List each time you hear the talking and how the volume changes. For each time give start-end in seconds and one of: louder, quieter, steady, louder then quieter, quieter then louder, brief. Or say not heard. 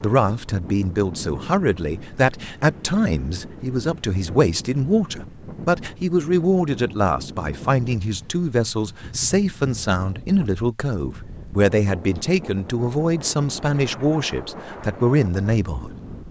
0.0-15.9 steady.